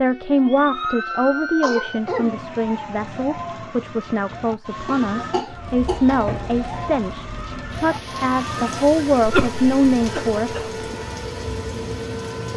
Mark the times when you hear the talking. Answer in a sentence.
You can hear the talking from 0.0 to 10.9 s.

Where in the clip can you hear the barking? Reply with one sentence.
You can't hear the barking here.